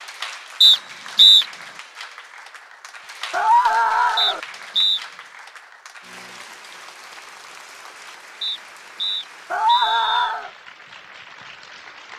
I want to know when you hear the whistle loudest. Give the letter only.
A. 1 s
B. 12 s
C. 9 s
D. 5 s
A.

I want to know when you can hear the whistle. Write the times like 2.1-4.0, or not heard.
0.6-1.4, 4.2-5.0, 8.4-10.3.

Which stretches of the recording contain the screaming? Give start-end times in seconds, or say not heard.
3.3-4.4, 9.5-10.5.